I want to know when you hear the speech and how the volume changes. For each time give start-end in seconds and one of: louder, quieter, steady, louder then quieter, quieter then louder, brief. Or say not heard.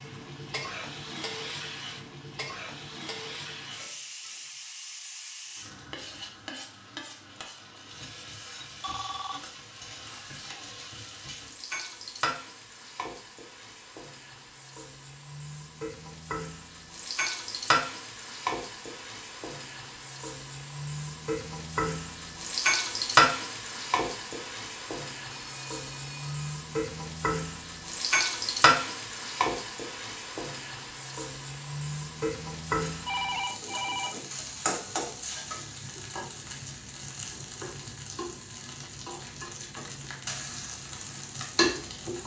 not heard.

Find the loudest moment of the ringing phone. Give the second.
33 s.